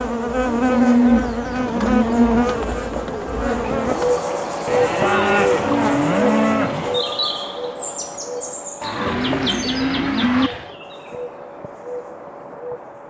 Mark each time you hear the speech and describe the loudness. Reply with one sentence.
The speech can't be heard in this clip.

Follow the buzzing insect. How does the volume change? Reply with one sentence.
The loudness of the buzzing insect goes down.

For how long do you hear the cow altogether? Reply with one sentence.
You can hear the cow for 6 seconds altogether.